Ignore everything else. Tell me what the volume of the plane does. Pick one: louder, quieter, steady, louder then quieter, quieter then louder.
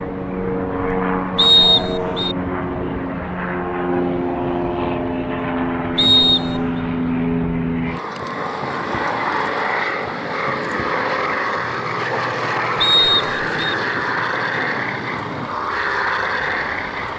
steady.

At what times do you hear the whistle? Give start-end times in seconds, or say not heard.
1.4-2.4, 6.0-6.7, 12.8-13.8.